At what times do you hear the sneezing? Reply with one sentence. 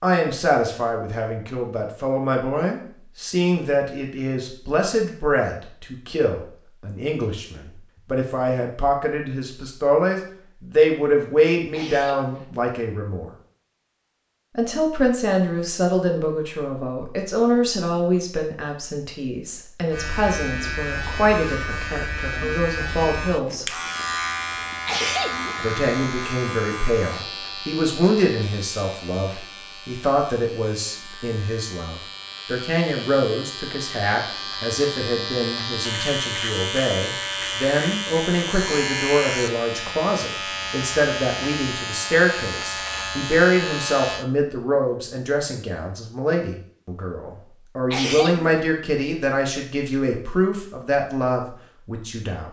The sneezing can be heard from 11.7 to 12.6 s, from 24.9 to 25.6 s and from 47.9 to 48.6 s.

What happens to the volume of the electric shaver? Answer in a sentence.
The loudness of the electric shaver goes down, then up.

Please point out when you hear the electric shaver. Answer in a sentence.
You can hear the electric shaver from 19.9 to 44.2 s.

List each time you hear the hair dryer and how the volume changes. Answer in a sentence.
The hair dryer can't be heard in this clip.